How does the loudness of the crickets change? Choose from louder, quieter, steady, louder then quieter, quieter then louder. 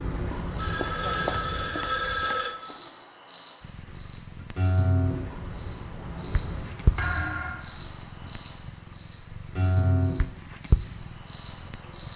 steady.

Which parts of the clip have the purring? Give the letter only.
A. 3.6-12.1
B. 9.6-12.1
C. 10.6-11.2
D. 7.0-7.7
A.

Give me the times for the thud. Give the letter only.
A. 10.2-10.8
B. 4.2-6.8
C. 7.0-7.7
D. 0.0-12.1
C.